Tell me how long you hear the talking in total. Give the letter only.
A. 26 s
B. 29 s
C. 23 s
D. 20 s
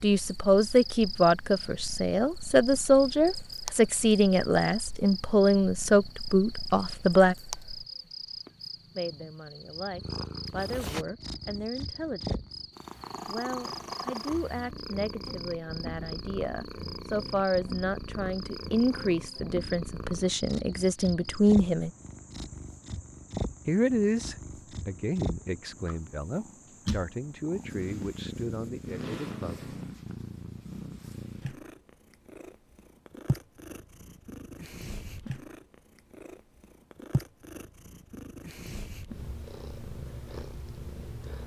A.